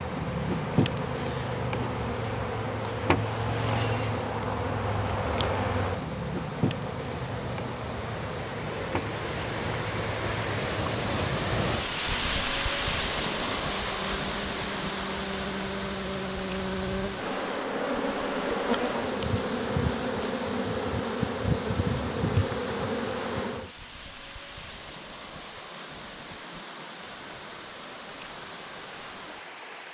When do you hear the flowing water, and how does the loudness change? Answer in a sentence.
You can hear the flowing water from 0.0 to 29.8 s, getting louder then quieter.